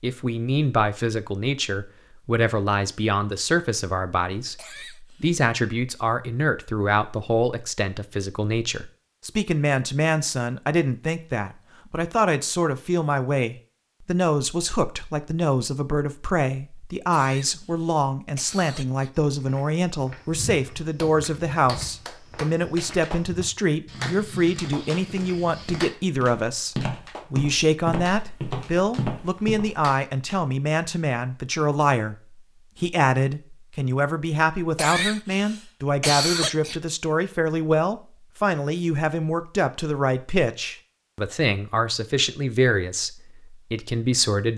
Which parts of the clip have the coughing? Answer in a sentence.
You can hear the coughing from 4.5 to 5.4 s, from 17.1 to 19.1 s and from 34.8 to 36.8 s.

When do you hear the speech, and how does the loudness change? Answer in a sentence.
The speech can be heard from 0.0 to 44.5 s, at a steady volume.